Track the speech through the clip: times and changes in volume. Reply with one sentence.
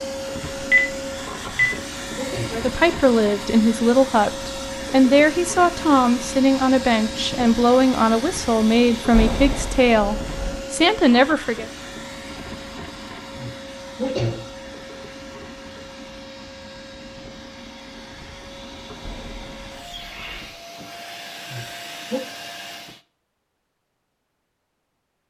You can hear the speech from 2.5 to 11.7 s, at a steady volume.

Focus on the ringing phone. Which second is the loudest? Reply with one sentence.
The loudest moment of the ringing phone is at 1 second.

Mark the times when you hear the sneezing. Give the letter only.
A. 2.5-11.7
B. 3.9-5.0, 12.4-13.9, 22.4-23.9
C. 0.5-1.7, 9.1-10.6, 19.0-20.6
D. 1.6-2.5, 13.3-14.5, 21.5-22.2
D.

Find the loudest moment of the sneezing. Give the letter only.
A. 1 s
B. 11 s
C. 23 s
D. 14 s
D.